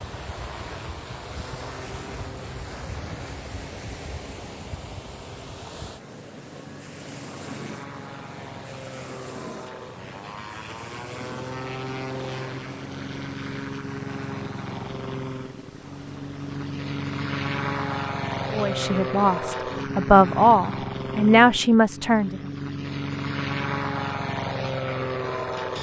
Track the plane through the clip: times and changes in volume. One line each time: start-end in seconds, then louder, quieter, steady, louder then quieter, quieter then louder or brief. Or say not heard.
0.0-25.7 louder.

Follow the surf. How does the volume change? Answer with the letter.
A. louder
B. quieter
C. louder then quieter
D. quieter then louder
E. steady
B.